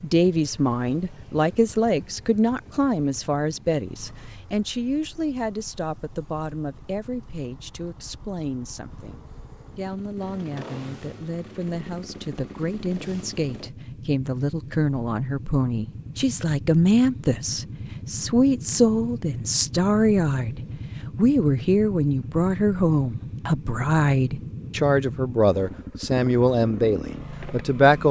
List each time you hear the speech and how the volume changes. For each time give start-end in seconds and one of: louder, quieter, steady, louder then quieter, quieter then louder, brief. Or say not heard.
0.0-28.0 quieter then louder.